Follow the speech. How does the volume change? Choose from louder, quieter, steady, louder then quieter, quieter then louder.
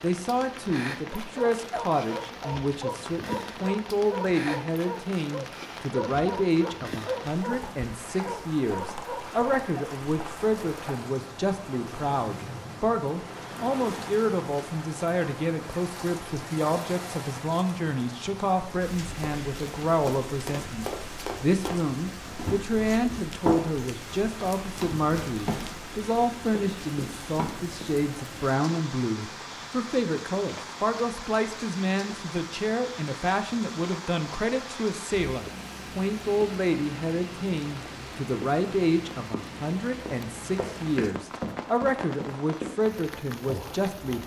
steady.